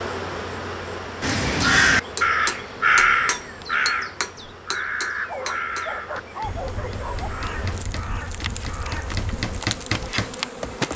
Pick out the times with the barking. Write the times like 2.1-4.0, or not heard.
5.2-7.3.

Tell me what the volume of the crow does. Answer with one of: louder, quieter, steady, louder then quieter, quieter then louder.
quieter.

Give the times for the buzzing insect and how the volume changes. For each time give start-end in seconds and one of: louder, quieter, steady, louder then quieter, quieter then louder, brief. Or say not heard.
0.0-10.9 quieter then louder.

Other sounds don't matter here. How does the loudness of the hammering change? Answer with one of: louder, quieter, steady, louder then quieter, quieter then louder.
quieter then louder.